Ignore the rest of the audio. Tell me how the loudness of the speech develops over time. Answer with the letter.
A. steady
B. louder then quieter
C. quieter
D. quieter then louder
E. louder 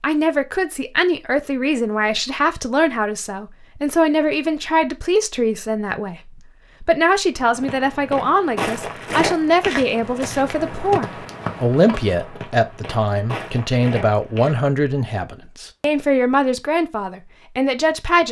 A.